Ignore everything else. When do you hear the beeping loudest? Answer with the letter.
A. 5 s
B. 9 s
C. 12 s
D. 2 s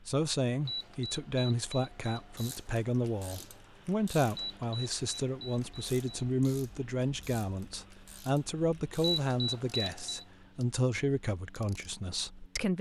B.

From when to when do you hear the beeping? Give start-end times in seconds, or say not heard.
0.7-2.6, 4.3-6.3, 9.0-10.2.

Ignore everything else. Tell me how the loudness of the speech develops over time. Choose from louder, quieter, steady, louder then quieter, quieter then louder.
steady.